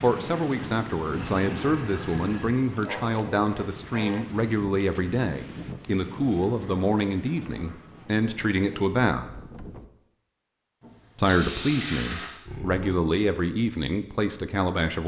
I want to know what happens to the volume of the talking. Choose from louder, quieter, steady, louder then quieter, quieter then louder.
steady.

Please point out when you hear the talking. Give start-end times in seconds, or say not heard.
0.0-9.3, 11.2-15.0.